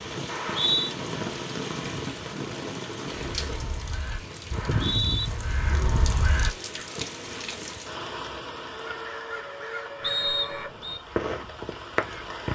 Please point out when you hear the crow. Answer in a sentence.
You can hear the crow from 3.3 to 6.8 s and from 8.7 to 12.5 s.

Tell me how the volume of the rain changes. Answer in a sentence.
The volume of the rain goes down.